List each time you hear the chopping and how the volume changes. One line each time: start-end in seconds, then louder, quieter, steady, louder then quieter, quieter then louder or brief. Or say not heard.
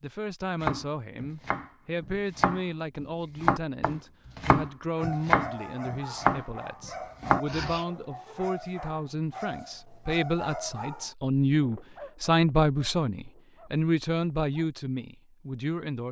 0.6-6.5 louder
7.2-7.8 brief.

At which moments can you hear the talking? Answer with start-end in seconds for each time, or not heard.
0.0-16.0.